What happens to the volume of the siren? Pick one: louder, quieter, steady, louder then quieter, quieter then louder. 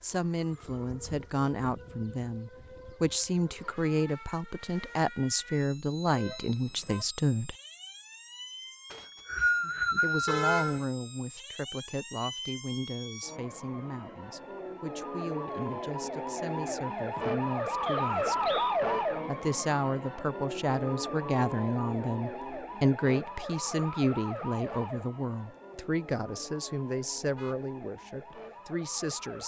louder then quieter.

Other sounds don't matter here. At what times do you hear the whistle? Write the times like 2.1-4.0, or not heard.
8.9-10.6, 17.9-18.8.